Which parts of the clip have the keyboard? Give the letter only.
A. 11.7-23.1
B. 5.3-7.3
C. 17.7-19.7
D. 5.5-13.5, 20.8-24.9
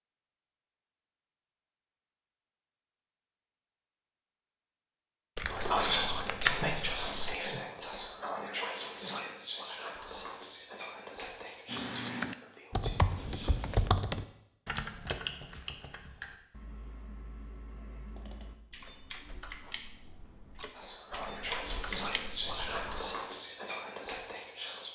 A.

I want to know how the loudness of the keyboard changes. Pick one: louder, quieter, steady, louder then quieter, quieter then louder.
quieter then louder.